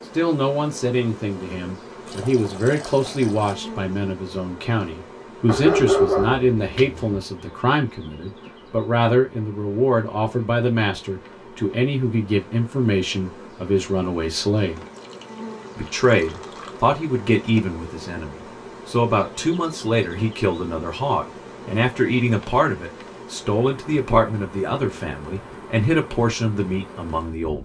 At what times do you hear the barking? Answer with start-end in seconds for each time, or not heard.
5.5-7.2.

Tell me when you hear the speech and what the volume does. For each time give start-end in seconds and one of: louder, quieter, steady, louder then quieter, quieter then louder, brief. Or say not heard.
0.1-14.8 steady
15.8-27.6 steady.